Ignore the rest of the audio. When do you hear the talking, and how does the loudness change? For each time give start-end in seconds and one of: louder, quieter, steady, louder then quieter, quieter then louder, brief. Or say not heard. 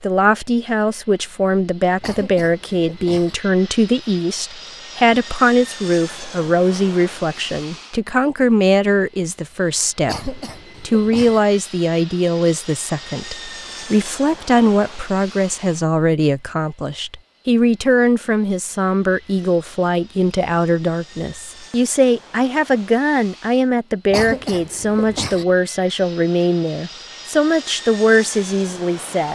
0.0-29.3 steady.